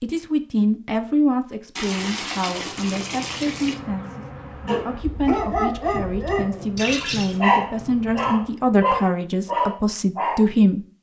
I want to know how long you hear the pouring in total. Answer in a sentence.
You can hear the pouring for 3 seconds altogether.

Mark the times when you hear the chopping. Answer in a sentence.
You can't hear the chopping here.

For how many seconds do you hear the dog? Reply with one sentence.
You can hear the dog for 5 seconds altogether.